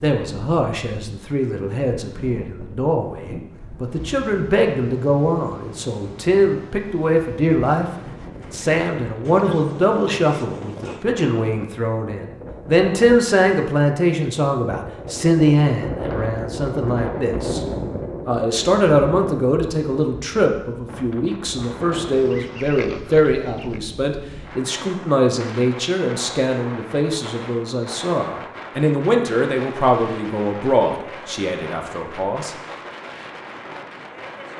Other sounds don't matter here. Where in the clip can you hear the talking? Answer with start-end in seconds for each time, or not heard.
0.0-17.6, 18.2-32.5.